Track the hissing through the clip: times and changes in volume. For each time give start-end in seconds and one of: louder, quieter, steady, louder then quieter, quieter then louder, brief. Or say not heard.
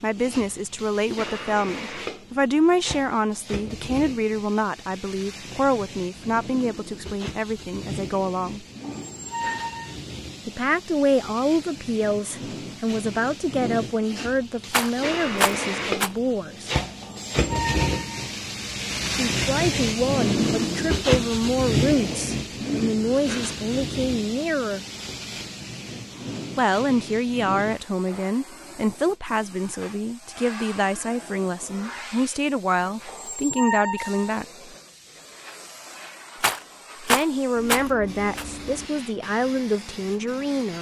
0.0-40.7 louder then quieter.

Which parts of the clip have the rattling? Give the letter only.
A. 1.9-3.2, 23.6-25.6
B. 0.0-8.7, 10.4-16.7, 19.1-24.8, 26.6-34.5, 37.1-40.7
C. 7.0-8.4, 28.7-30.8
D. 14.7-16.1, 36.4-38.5
D.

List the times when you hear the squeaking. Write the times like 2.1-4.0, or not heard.
8.8-9.9, 17.0-18.3, 33.0-34.4.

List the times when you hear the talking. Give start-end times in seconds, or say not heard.
0.0-8.7, 10.4-16.7, 19.1-24.8, 26.6-34.5, 37.1-40.7.